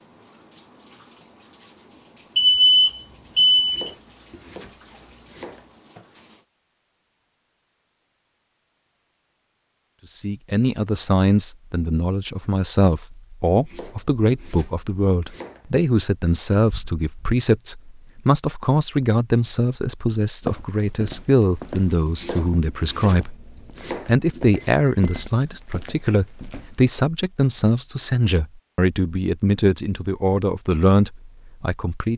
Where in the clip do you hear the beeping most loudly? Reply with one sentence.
The volume of the beeping peaks at 3 seconds.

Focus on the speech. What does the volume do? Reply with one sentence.
The volume of the speech stays about the same.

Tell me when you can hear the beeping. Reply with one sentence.
You can hear the beeping from 2.4 to 3.9 s, from 16.7 to 17.4 s and from 24.8 to 25.9 s.